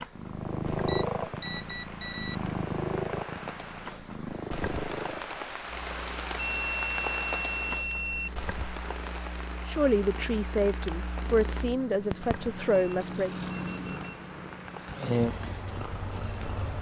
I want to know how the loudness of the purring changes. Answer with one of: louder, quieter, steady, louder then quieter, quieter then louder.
quieter then louder.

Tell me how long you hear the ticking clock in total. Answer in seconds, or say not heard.
not heard.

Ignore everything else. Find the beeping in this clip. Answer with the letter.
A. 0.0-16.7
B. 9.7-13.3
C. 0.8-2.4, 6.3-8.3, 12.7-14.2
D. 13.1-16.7
C.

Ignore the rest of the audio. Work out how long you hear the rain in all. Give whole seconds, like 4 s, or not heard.
17 s.